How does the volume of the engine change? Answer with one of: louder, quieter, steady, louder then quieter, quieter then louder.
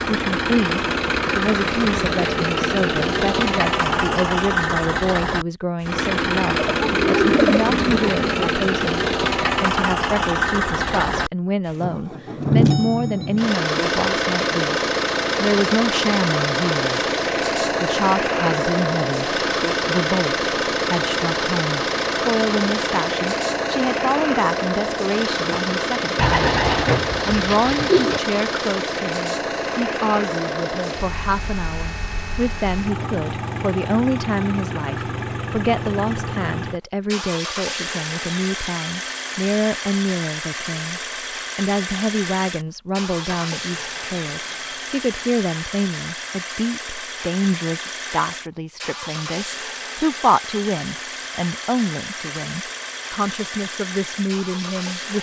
quieter.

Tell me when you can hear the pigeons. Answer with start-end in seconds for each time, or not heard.
6.5-8.5, 26.1-28.2, 43.2-45.2.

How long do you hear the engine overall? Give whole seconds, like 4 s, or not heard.
55 s.